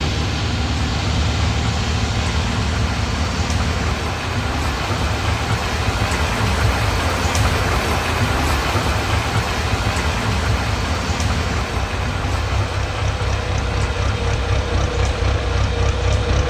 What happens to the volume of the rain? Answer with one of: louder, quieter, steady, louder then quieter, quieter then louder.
louder then quieter.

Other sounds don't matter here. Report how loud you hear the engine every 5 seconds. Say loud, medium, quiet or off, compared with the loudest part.
loud, medium, loud, loud.